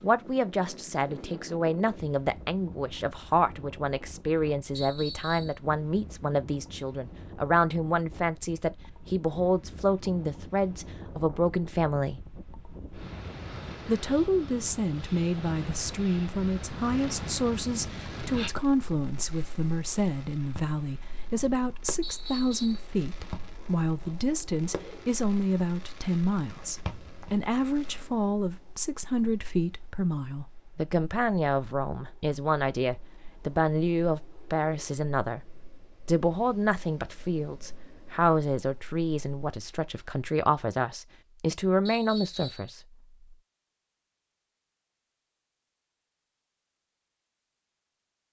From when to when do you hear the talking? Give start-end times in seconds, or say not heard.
0.0-12.2, 13.8-35.4, 36.0-42.8.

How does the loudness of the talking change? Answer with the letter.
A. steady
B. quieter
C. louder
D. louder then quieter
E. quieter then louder
A.